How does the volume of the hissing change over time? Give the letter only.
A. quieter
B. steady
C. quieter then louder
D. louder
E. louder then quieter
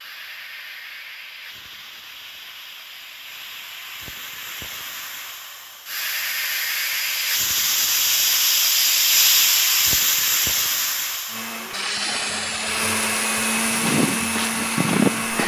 E.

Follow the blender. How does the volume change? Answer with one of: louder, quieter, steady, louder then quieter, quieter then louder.
louder.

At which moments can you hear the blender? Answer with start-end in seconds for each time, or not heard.
11.2-15.4.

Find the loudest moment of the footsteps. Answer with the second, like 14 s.
15 s.